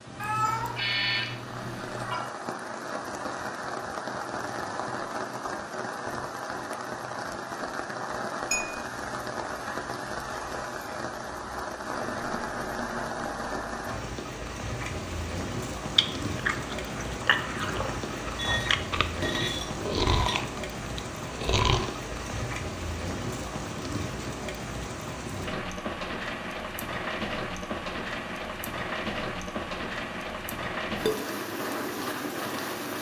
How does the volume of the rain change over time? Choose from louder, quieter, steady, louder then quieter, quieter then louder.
steady.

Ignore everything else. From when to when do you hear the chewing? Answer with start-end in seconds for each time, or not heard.
15.9-21.9.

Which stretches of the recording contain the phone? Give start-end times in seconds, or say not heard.
not heard.